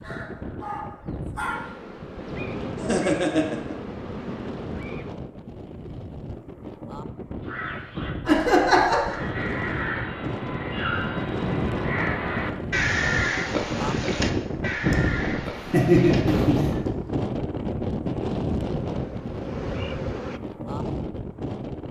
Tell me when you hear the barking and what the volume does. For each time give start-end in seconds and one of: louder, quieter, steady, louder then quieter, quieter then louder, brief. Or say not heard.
not heard.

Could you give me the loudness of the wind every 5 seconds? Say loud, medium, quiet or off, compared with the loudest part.
medium, medium, loud, loud, medium.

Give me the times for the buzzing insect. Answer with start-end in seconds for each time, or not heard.
1.5-5.2, 18.6-20.4.